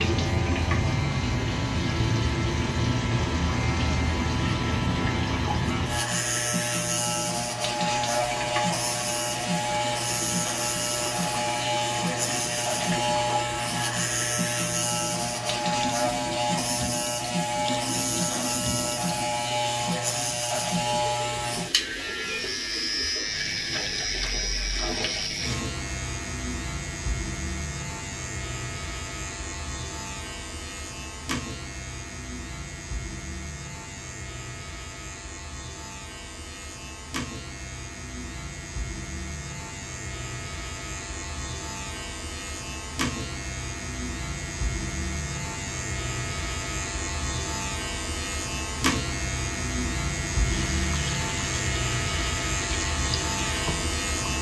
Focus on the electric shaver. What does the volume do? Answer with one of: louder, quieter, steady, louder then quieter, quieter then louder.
quieter then louder.